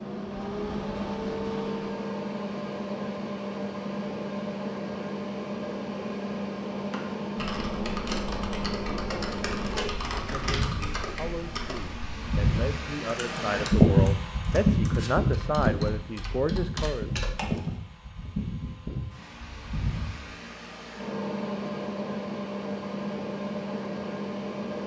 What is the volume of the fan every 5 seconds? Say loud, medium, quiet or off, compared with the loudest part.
medium, medium, loud, medium, medium.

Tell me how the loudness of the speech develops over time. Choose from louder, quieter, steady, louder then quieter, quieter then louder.
louder.